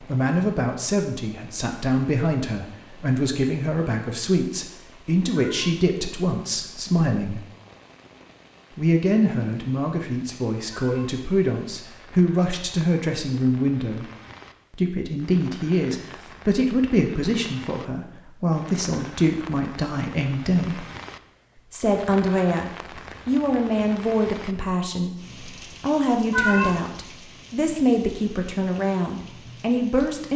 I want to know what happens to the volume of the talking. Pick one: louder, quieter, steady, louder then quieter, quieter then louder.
steady.